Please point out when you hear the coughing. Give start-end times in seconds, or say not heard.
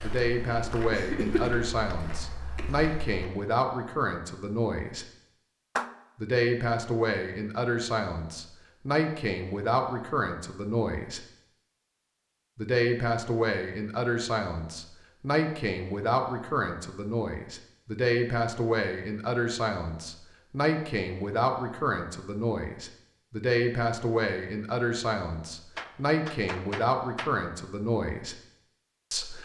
0.5-2.0.